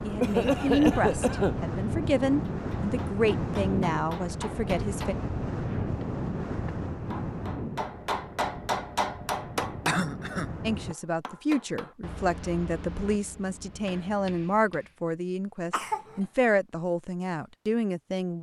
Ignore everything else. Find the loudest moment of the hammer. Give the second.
9 s.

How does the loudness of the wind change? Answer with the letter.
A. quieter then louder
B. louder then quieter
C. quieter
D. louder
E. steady
C.